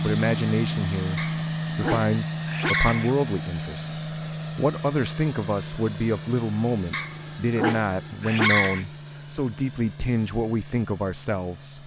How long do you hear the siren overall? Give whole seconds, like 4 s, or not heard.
not heard.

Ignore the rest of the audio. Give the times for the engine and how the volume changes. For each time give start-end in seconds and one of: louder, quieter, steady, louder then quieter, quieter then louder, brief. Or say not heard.
0.0-11.8 quieter.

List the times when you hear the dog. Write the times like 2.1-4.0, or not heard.
1.1-3.1, 6.9-8.8.